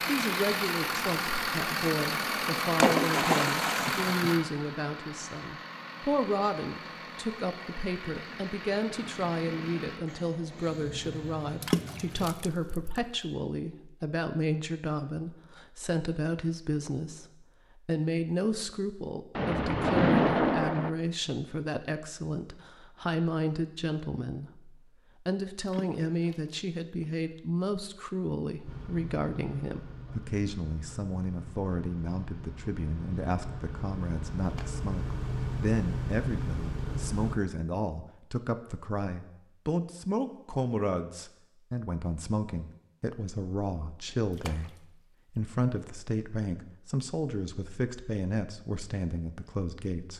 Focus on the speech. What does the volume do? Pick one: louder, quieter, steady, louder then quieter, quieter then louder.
steady.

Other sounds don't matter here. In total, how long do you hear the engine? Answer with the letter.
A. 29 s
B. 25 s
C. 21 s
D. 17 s
C.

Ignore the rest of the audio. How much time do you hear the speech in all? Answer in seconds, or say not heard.
50 s.